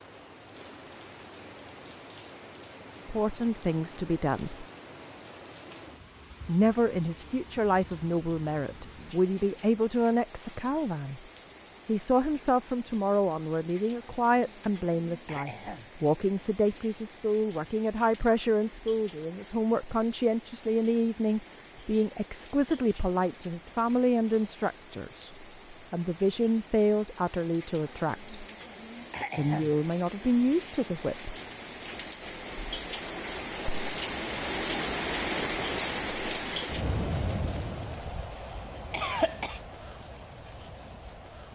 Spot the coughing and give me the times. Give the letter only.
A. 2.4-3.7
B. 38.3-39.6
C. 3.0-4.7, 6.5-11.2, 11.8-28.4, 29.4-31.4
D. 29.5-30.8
B.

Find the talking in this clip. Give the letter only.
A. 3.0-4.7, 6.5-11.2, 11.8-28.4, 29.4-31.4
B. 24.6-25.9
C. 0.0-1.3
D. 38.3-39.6
A.